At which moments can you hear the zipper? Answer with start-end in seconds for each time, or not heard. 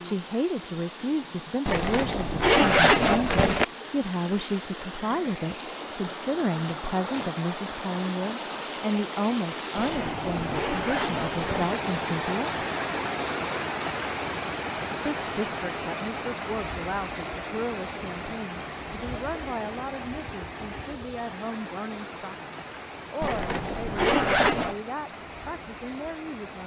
1.6-3.6, 9.8-11.8, 23.2-24.8.